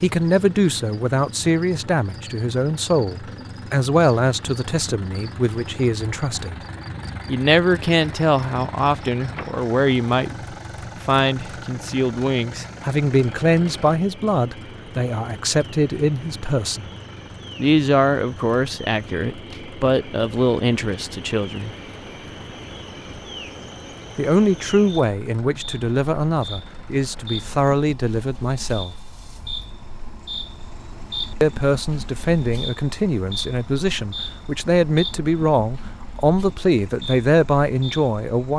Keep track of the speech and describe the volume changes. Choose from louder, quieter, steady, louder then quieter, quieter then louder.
steady.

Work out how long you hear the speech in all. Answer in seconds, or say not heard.
32 s.